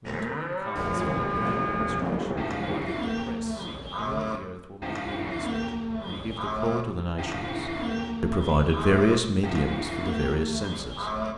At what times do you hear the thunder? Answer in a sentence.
The thunder can be heard from 0.8 to 2.8 s.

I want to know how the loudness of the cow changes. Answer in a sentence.
The loudness of the cow stays about the same.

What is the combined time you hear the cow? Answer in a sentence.
The cow can be heard for 11 seconds in total.